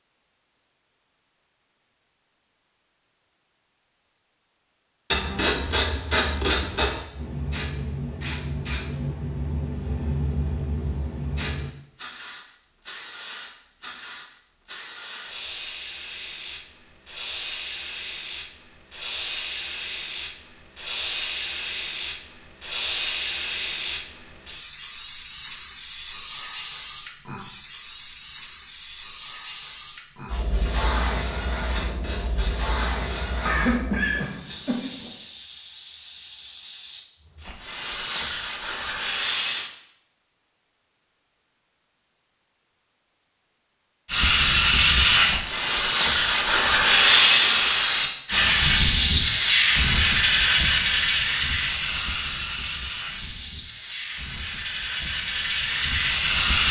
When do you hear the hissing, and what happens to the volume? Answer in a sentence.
The hissing can be heard from 7.1 to 39.7 s, getting louder then quieter; and from 44.0 to 56.6 s, getting quieter.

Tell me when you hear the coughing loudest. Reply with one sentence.
The loudest moment of the coughing is at 34 seconds.